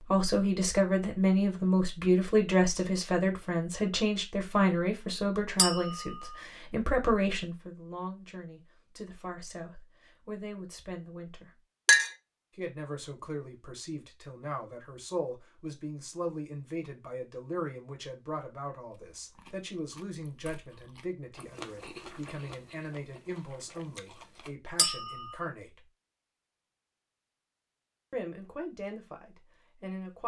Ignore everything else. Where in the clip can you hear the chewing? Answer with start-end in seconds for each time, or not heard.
19.1-24.6.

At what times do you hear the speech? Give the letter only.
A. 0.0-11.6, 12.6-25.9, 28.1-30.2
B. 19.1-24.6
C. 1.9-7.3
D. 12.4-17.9
A.